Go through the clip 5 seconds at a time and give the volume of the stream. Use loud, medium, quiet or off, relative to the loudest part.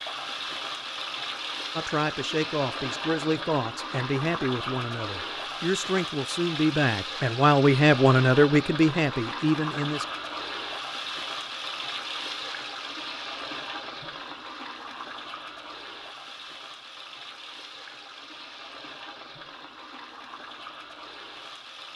loud, loud, loud, medium, medium.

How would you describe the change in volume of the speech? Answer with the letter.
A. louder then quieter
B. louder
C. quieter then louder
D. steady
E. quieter
B.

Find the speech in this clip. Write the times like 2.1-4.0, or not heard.
1.8-10.1.